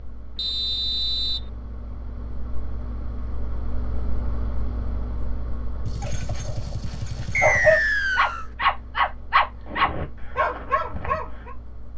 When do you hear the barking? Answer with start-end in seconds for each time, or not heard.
6.0-11.6.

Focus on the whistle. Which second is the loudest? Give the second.
8 s.